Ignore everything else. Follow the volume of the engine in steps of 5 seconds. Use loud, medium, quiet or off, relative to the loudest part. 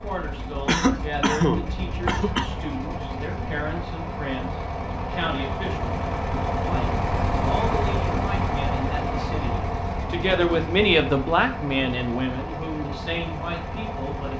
medium, loud, medium.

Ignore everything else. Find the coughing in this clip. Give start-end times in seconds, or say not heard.
0.7-2.5.